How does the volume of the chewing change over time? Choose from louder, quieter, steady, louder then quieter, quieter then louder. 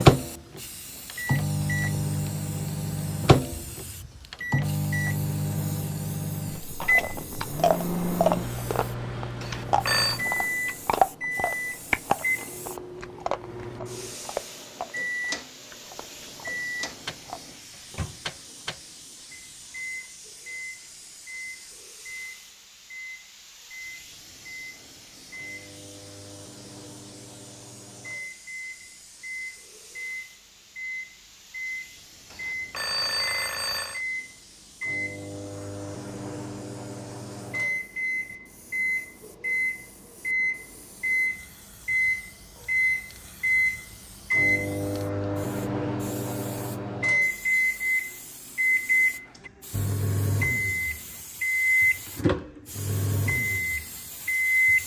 quieter.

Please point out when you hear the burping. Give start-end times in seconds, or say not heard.
not heard.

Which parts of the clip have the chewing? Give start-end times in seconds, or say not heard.
6.6-17.6.